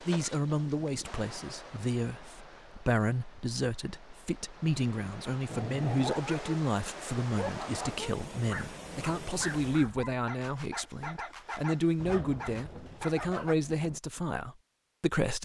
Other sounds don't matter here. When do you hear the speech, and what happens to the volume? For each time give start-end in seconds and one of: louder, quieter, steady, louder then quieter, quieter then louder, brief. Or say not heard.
0.0-15.4 steady.